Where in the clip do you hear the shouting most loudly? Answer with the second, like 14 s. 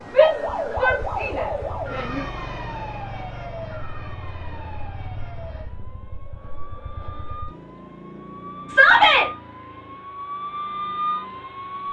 9 s.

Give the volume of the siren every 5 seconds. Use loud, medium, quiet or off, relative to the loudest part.
loud, medium, loud.